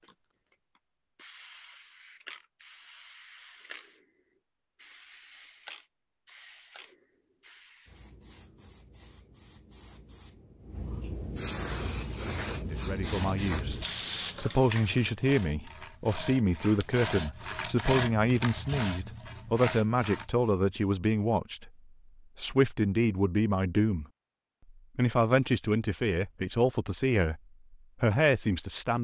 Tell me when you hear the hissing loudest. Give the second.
14 s.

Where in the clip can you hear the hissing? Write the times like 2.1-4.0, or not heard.
0.0-15.1.